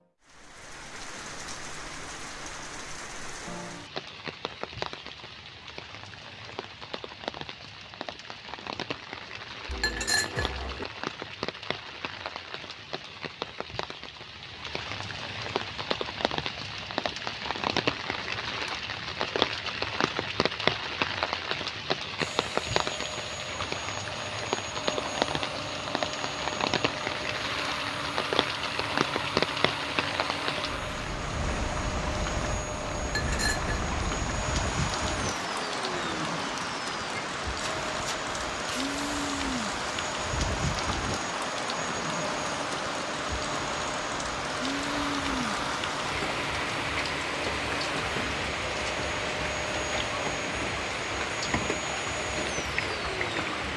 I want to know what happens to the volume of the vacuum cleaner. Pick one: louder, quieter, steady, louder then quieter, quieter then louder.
steady.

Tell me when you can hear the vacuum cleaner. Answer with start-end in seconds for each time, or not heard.
22.1-53.7.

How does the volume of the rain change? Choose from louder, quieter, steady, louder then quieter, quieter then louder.
louder.